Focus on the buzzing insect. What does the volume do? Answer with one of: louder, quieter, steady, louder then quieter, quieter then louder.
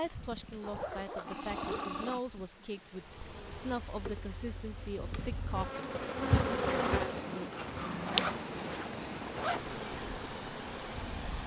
louder then quieter.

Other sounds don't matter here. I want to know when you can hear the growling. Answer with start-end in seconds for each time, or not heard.
1.1-2.9, 7.2-8.3.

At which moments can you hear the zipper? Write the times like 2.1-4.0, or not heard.
0.6-2.1, 7.5-9.8.